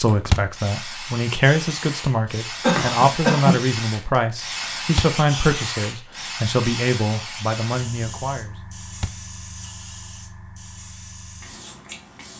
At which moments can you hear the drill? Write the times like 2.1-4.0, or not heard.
not heard.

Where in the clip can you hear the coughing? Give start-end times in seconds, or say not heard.
2.6-3.6.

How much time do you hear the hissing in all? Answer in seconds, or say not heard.
12 s.